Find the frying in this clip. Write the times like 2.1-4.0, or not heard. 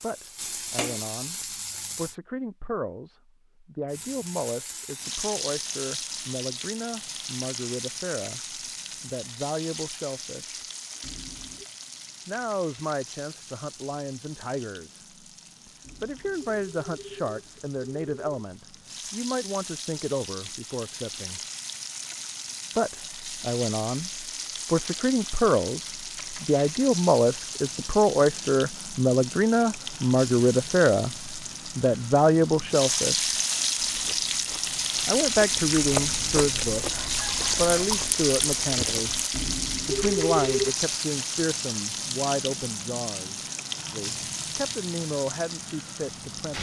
0.0-2.1, 3.9-46.5.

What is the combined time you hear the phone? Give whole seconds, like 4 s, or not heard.
5 s.